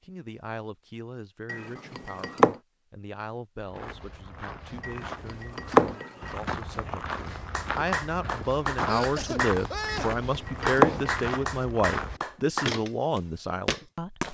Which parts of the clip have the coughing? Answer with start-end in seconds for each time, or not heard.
8.8-10.2.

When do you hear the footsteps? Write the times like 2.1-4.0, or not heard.
3.6-14.3.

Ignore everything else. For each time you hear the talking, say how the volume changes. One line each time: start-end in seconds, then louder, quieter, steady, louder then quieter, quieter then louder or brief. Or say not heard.
0.0-14.2 louder.